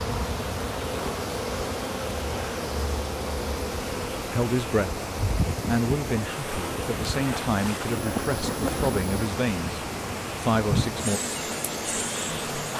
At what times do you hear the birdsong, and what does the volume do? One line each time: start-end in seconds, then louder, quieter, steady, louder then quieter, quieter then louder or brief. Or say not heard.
not heard.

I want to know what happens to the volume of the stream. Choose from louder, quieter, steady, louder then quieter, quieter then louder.
steady.